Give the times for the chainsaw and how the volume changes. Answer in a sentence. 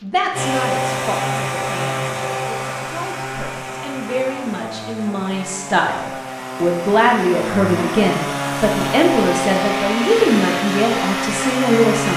You can hear the chainsaw from 0.3 to 12.1 s, getting quieter then louder.